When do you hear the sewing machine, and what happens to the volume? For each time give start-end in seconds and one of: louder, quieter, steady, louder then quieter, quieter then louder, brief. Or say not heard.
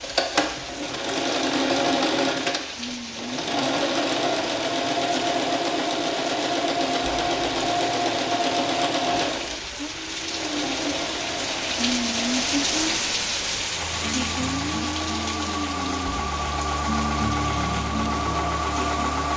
0.0-19.3 quieter then louder.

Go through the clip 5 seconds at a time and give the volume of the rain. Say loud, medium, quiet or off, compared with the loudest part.
medium, medium, loud, medium.